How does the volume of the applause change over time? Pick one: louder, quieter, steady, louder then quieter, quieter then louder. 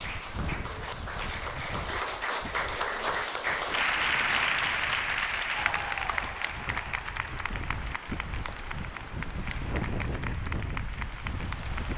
louder then quieter.